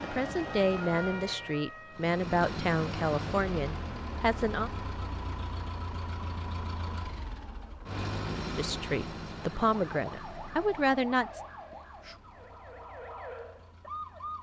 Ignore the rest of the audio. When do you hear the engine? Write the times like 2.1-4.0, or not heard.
1.9-14.3.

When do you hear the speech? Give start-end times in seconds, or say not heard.
0.0-4.7, 8.6-11.4.